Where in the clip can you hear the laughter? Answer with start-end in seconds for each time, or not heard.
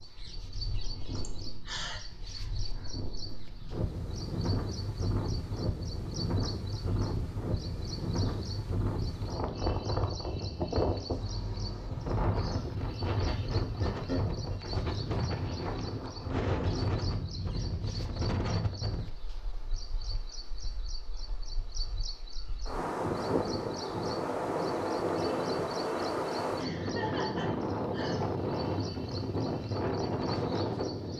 1.1-2.0, 13.2-14.3, 26.6-28.1.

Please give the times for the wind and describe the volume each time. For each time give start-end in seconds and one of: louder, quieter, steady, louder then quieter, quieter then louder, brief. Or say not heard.
0.0-31.1 louder.